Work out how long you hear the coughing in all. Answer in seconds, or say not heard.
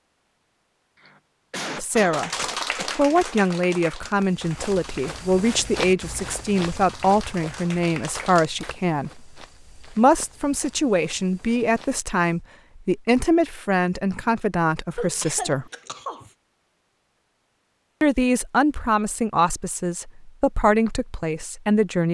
4 s.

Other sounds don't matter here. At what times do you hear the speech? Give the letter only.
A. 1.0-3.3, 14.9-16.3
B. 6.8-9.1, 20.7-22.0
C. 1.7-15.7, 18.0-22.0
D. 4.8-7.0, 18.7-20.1
C.